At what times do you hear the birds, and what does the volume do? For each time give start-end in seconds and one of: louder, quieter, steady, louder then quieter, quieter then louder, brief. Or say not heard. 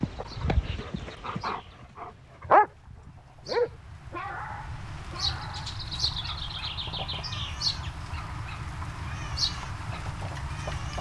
0.1-10.9 louder.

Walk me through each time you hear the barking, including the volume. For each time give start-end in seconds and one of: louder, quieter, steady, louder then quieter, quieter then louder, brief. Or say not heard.
0.0-10.9 louder then quieter.